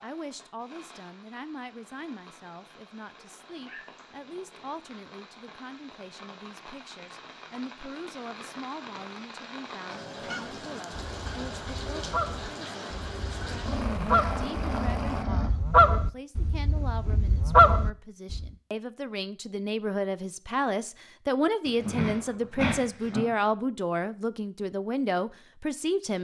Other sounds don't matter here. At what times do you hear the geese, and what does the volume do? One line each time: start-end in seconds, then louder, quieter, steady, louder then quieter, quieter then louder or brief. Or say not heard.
10.2-18.5 louder.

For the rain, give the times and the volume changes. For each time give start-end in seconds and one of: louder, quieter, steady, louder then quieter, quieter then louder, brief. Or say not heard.
0.0-15.2 louder.